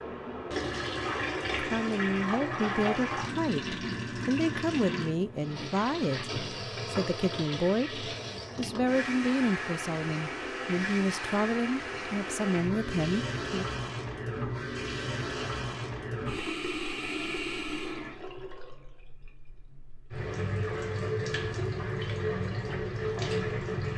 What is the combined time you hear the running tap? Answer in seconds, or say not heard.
24 s.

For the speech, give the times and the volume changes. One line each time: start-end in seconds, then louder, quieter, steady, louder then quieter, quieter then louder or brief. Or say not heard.
1.6-13.7 steady.